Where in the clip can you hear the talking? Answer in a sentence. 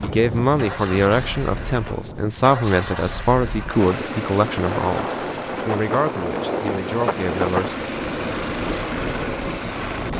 The talking can be heard from 0.0 to 7.8 s.